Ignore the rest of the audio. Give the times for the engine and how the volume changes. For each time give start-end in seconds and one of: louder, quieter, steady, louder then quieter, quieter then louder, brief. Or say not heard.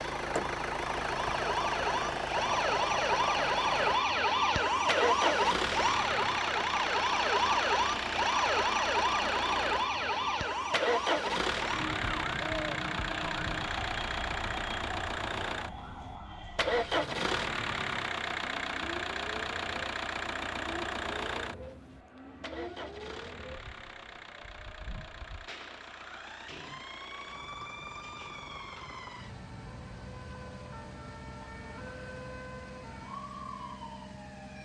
0.0-34.6 quieter.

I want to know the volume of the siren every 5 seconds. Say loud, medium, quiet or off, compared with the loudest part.
loud, loud, medium, quiet, quiet, quiet, quiet.